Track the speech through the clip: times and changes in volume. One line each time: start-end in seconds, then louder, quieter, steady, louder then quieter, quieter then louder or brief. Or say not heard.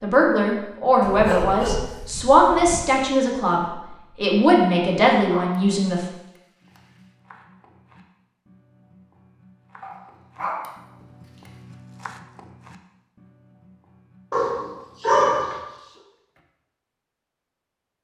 0.0-6.0 steady.